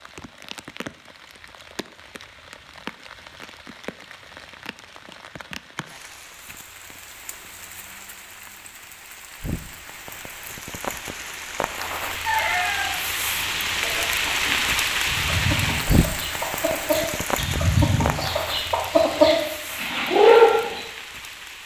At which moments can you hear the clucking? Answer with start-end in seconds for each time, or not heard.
12.2-20.8.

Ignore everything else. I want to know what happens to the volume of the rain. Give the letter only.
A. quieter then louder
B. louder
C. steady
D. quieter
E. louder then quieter
E.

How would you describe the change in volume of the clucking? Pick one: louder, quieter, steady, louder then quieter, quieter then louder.
louder.